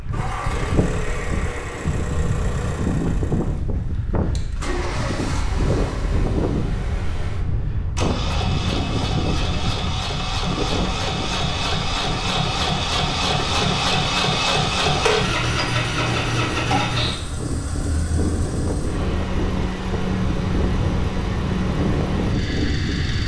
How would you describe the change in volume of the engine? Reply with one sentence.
The volume of the engine goes up, then down.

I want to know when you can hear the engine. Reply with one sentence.
You can hear the engine from 0.0 to 23.2 s.